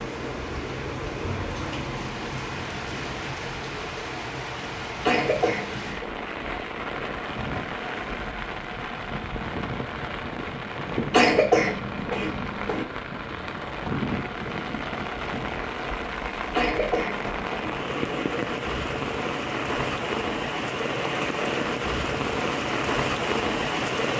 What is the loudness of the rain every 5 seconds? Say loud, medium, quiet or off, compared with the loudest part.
medium, medium, medium, loud, loud.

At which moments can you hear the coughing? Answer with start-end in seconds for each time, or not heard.
5.0-6.1, 11.1-12.8, 16.5-18.2.